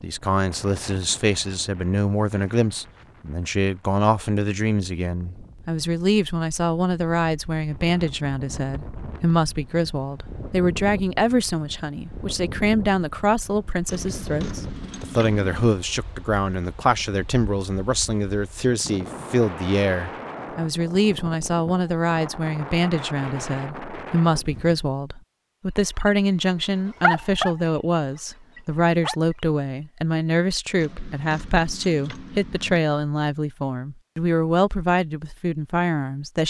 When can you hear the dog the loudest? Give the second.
27 s.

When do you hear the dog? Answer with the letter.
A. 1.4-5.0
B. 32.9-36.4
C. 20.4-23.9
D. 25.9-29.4
D.